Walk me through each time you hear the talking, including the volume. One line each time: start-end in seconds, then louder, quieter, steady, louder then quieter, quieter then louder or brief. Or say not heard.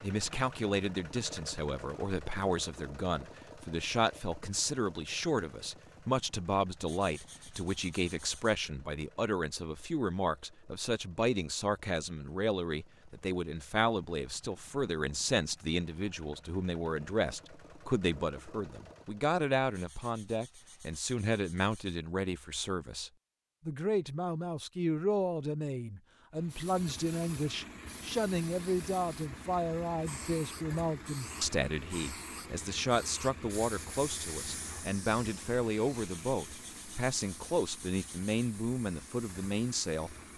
0.0-40.1 steady.